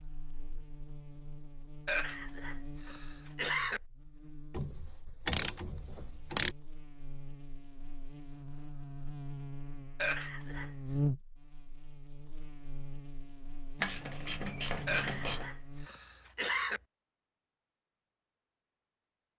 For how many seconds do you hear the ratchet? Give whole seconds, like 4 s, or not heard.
4 s.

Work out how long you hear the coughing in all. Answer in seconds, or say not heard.
5 s.